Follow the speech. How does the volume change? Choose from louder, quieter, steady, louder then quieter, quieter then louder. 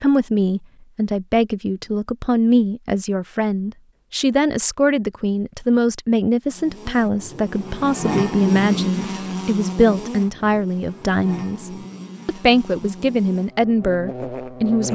steady.